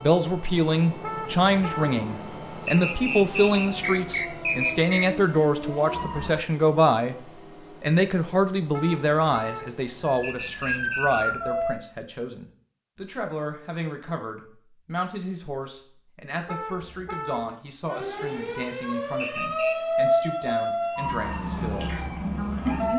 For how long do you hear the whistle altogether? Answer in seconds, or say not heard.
4 s.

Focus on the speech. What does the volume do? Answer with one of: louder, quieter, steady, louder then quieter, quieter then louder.
quieter.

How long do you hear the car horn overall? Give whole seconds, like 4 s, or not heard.
3 s.